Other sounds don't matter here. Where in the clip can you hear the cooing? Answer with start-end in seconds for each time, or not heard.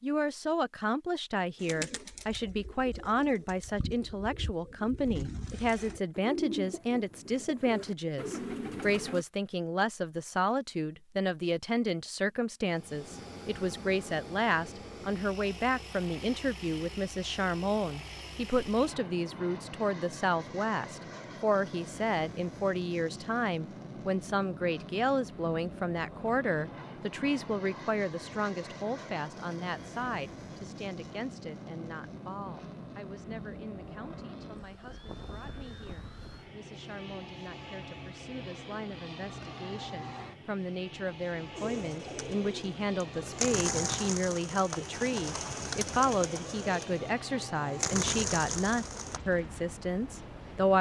1.6-9.2, 41.5-49.2.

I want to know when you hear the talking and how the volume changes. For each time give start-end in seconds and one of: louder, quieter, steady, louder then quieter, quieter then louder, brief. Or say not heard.
0.0-50.7 quieter then louder.